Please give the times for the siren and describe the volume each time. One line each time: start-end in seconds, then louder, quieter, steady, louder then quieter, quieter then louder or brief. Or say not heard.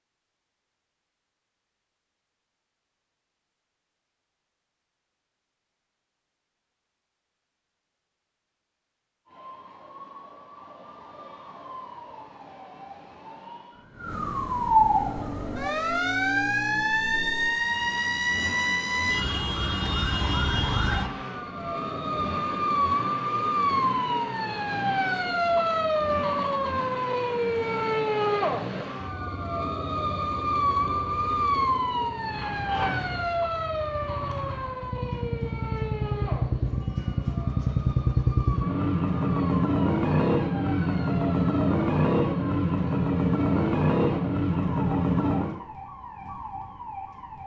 9.2-47.4 quieter.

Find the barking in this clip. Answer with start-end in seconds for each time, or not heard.
not heard.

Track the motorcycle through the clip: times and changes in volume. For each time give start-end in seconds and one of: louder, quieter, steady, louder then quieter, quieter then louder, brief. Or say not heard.
14.9-45.6 louder.